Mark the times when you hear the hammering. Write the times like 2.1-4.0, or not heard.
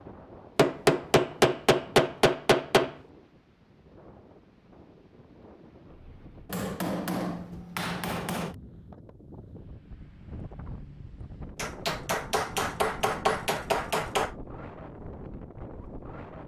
0.6-3.0, 6.5-8.6, 11.6-14.3.